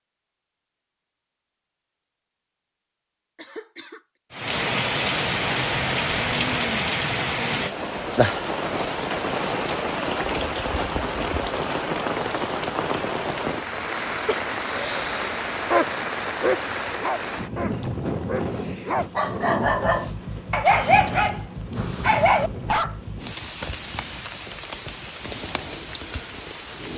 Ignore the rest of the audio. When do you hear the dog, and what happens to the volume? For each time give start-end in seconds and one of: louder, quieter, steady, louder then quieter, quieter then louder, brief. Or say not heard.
15.7-22.9 quieter then louder.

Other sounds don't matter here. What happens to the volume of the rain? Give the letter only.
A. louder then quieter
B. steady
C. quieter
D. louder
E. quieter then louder
C.